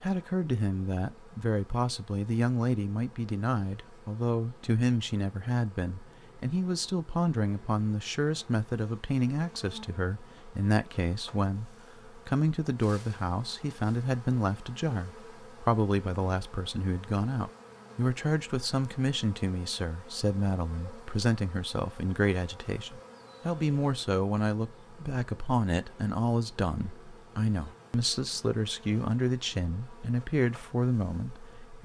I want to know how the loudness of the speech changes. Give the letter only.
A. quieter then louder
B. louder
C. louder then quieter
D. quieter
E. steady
E.